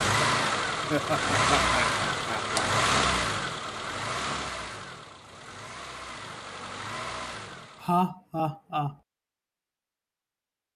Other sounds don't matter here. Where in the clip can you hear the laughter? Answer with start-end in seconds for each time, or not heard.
0.9-2.6, 7.8-8.9.